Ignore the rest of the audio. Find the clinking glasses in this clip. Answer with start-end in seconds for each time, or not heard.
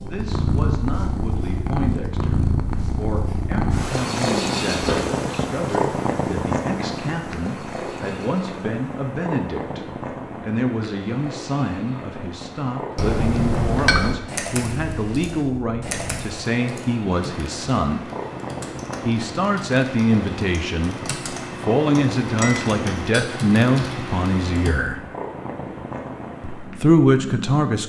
4.8-5.8, 12.9-14.2, 22.4-23.4.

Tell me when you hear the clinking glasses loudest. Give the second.
14 s.